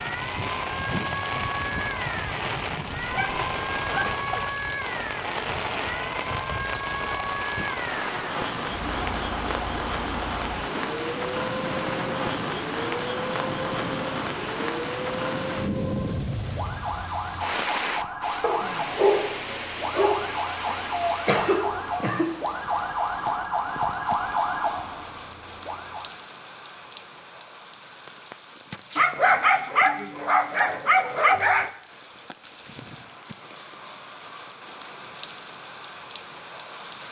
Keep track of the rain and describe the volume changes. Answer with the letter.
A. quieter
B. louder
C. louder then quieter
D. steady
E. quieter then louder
A.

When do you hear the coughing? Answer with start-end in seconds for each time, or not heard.
20.6-22.3.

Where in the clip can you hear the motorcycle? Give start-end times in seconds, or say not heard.
not heard.